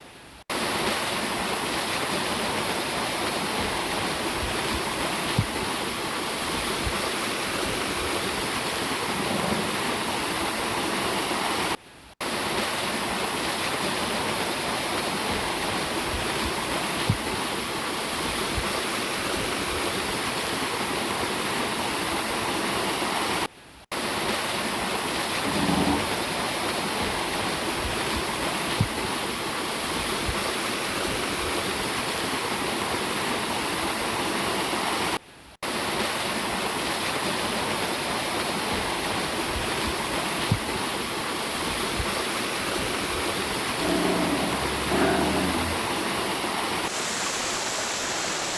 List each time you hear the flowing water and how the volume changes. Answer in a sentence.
You can hear the flowing water from 0.0 to 48.5 s, at a steady volume.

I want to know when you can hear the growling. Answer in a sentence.
The growling can be heard from 9.1 to 9.8 s, from 25.4 to 26.1 s and from 43.8 to 45.8 s.